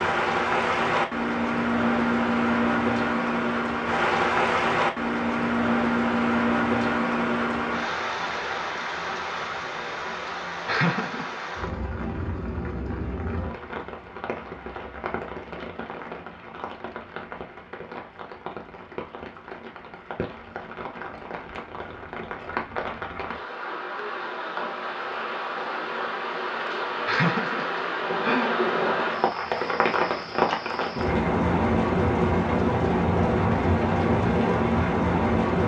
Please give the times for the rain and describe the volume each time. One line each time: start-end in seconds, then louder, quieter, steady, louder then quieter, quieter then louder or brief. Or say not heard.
0.0-35.6 quieter then louder.